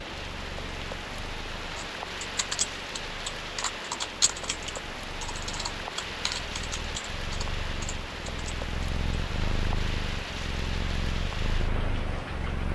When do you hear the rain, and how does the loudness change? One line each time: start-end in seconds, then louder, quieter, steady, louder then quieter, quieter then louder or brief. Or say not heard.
0.0-12.7 steady.